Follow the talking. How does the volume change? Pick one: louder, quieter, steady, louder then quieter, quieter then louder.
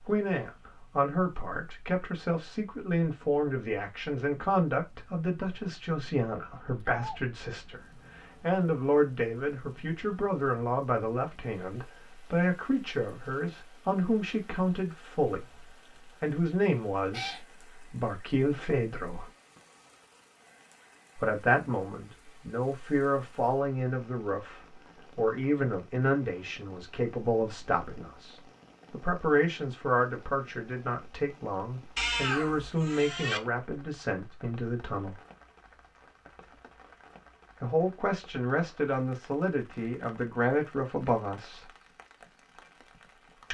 steady.